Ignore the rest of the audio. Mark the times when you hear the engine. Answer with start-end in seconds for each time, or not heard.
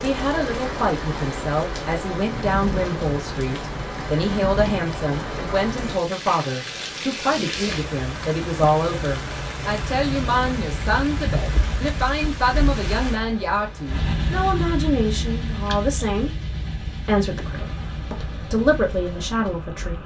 9.9-20.0.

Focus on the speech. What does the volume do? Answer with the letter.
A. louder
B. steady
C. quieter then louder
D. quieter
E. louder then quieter
B.